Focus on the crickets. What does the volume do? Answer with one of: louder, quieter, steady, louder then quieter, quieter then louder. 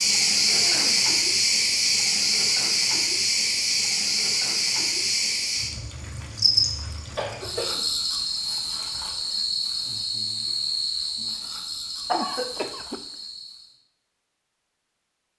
quieter.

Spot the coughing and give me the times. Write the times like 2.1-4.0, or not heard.
0.5-1.1, 6.9-7.8, 12.1-13.0.